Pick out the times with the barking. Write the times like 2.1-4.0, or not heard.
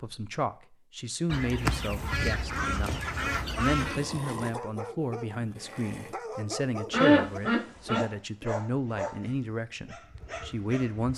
3.4-11.1.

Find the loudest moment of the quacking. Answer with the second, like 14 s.
7 s.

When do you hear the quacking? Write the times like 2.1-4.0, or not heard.
1.2-4.0, 6.9-8.4.